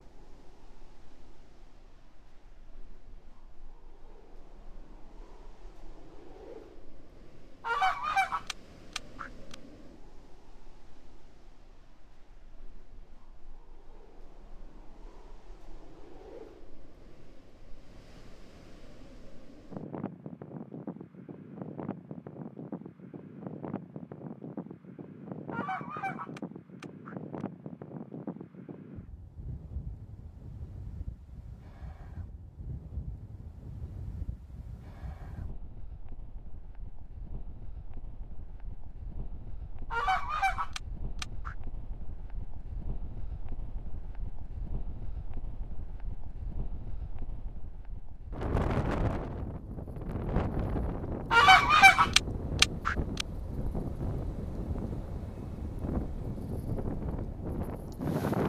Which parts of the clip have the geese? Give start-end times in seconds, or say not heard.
7.7-9.6, 25.5-27.4, 39.9-41.5, 51.3-53.2.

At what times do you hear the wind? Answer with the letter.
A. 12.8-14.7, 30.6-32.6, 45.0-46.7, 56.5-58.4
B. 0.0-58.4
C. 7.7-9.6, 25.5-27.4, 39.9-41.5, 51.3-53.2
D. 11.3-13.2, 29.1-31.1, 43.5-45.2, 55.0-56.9
B.